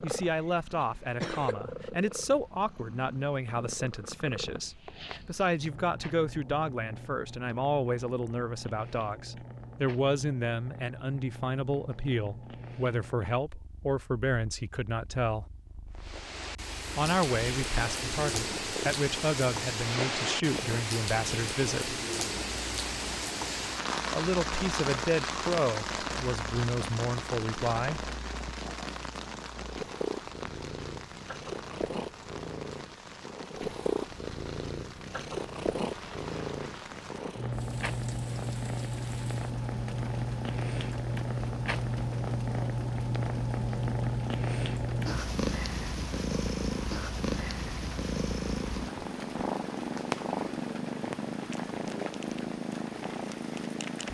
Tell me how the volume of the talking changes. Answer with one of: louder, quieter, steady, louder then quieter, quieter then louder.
steady.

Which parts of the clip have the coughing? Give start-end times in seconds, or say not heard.
0.8-1.6.